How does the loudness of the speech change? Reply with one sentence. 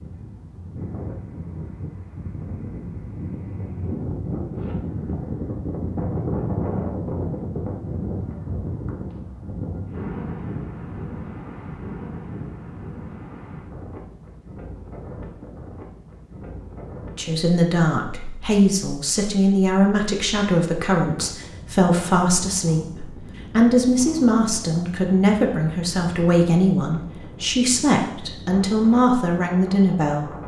The loudness of the speech stays about the same.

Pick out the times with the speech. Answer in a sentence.
The speech can be heard from 17.1 to 30.3 s.